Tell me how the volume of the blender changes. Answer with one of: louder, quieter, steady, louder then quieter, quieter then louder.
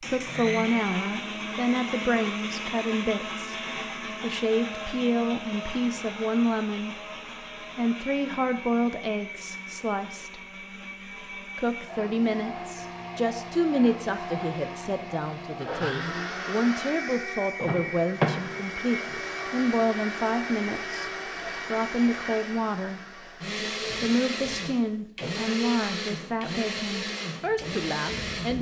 quieter then louder.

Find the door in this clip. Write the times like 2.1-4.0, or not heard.
17.6-18.6.